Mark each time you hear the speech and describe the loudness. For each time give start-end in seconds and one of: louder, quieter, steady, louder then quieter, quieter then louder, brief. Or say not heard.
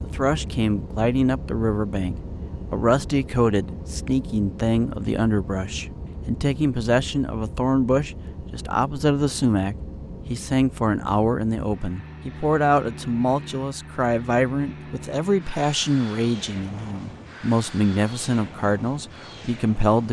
0.0-20.0 steady.